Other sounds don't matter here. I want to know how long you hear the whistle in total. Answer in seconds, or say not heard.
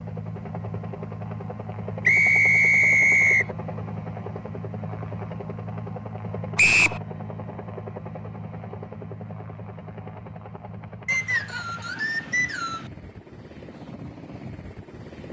4 s.